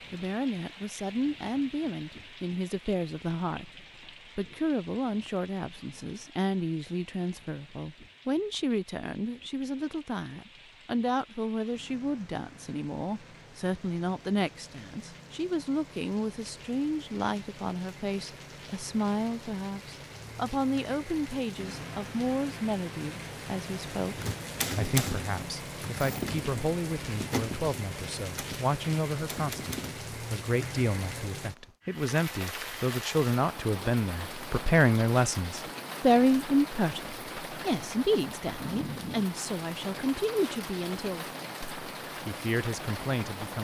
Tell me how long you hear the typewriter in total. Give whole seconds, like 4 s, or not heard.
6 s.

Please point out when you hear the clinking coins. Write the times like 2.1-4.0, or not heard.
not heard.